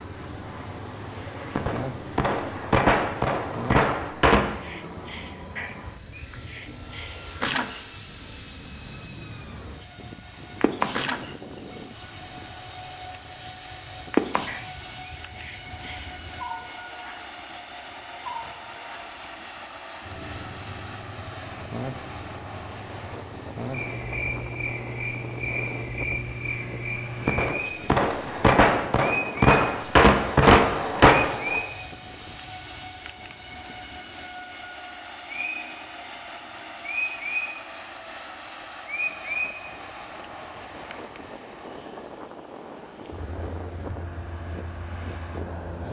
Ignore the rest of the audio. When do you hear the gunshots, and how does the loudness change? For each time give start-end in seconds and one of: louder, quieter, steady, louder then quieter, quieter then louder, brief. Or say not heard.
1.6-4.5 brief
27.2-31.6 louder.